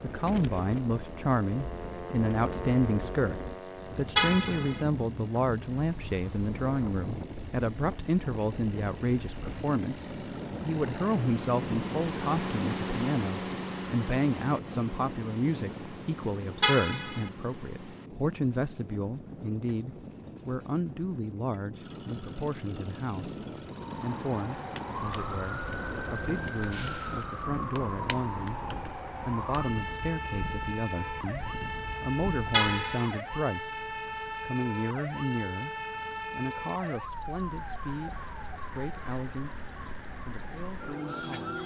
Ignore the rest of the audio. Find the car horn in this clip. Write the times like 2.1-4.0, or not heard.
4.2-4.8, 16.6-17.3, 32.5-33.2.